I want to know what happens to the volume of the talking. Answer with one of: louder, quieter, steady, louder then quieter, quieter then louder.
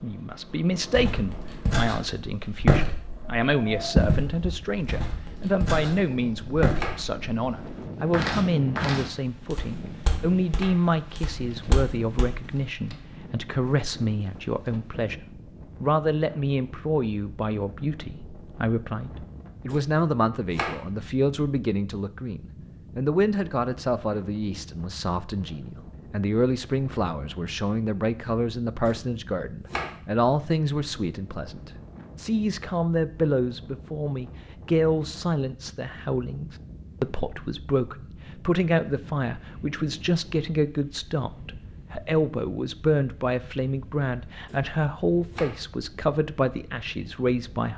steady.